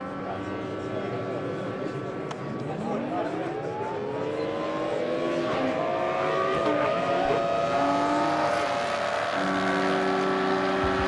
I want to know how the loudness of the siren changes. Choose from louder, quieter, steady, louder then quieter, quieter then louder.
louder.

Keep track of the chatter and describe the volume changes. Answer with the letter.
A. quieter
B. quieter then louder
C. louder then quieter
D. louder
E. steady
E.